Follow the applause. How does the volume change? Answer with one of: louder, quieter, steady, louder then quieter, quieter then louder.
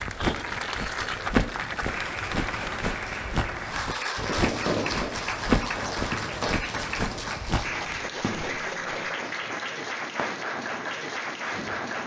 steady.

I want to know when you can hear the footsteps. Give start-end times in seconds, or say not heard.
0.0-8.1.